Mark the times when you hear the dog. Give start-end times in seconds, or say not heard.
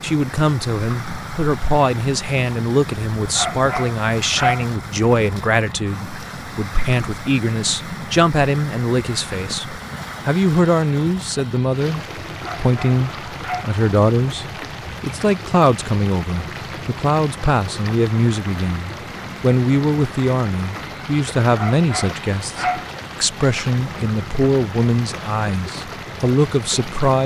3.4-4.7, 12.4-13.8, 21.6-22.9.